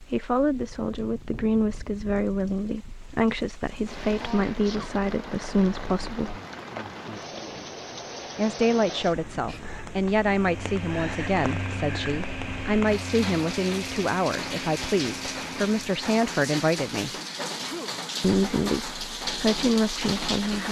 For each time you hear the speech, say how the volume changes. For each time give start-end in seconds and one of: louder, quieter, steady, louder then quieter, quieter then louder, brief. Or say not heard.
0.0-6.4 steady
8.3-17.1 steady
18.2-20.6 brief.